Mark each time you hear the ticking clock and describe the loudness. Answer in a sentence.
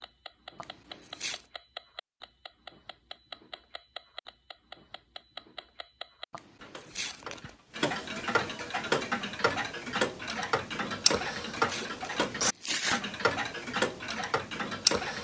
You can hear the ticking clock from 0.0 to 15.1 s, getting louder.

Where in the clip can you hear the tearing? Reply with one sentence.
The tearing can be heard from 0.6 to 1.4 s, from 6.3 to 7.5 s and from 11.1 to 13.0 s.